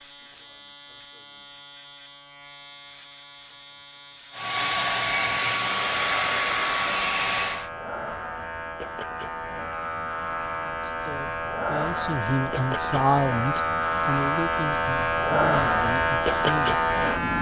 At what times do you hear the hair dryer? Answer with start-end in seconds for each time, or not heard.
4.3-7.7.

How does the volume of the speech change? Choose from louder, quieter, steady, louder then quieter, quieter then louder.
louder then quieter.